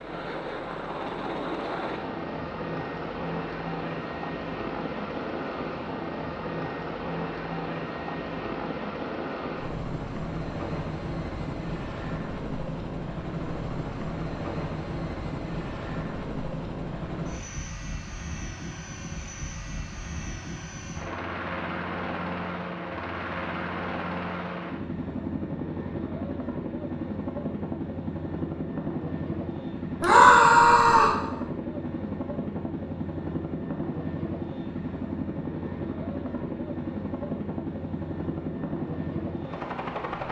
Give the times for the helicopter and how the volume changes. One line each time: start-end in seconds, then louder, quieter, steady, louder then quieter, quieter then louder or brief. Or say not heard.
0.0-40.2 steady.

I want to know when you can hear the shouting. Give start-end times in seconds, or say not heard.
30.0-31.1.